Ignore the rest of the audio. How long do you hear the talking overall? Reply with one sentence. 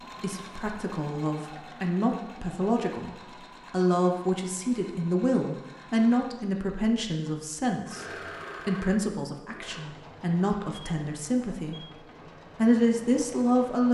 You can hear the talking for 12 seconds altogether.